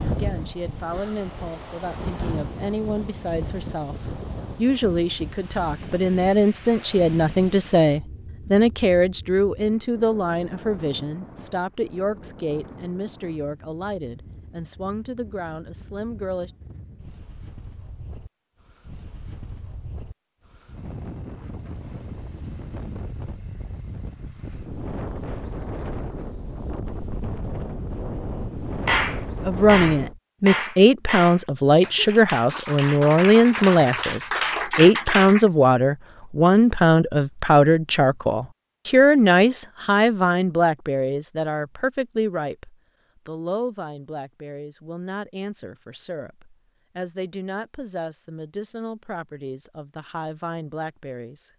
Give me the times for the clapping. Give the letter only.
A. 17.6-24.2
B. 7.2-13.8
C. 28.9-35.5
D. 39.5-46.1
C.